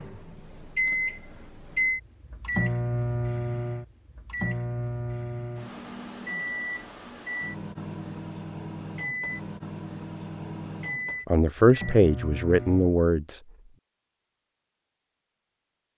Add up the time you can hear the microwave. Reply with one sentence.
The microwave can be heard for 13 seconds in total.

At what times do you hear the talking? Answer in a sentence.
You can hear the talking from 11.2 to 13.4 s.